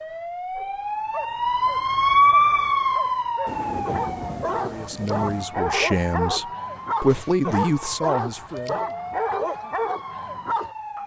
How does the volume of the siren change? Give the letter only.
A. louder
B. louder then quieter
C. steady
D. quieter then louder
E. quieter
E.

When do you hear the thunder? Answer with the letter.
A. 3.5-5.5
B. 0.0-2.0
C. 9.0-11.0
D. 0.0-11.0
A.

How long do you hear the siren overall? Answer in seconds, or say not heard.
11 s.